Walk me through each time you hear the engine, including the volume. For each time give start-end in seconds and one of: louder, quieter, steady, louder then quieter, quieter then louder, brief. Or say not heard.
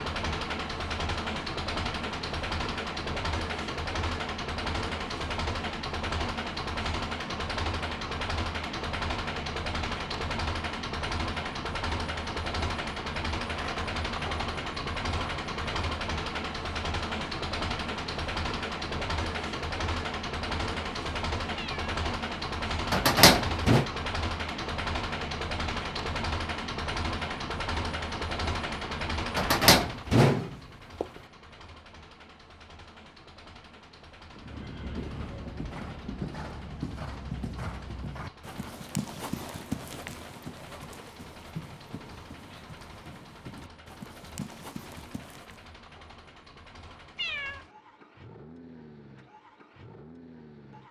0.0-50.8 quieter.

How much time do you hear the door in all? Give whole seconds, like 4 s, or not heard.
3 s.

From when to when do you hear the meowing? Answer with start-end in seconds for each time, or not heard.
21.6-22.0, 47.1-47.6.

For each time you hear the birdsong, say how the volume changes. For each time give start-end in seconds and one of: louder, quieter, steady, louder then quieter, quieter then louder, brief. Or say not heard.
not heard.